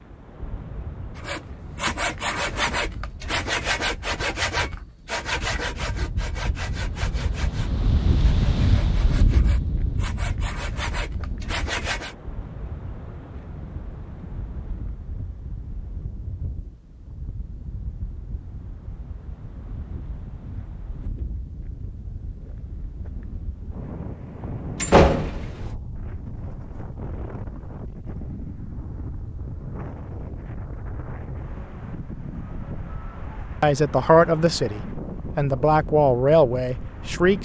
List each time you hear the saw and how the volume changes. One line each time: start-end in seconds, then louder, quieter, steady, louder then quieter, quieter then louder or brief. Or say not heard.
1.1-12.2 quieter then louder.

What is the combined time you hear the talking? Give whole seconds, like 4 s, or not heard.
4 s.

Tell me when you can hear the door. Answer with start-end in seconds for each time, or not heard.
24.8-25.8.